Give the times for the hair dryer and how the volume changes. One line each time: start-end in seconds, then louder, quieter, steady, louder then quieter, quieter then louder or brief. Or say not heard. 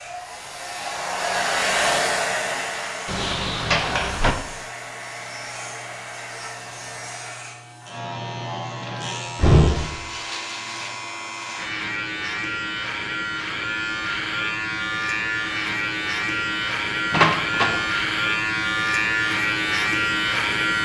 0.0-7.5 quieter.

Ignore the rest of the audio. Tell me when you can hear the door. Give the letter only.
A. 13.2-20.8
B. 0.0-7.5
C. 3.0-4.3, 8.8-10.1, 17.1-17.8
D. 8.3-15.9
C.